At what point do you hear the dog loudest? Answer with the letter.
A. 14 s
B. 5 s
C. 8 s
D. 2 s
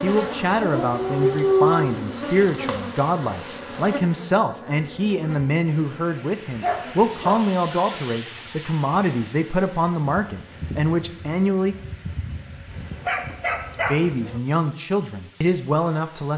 D.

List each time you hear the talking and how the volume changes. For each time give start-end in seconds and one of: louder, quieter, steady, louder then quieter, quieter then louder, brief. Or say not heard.
0.0-11.8 steady
13.8-16.3 brief.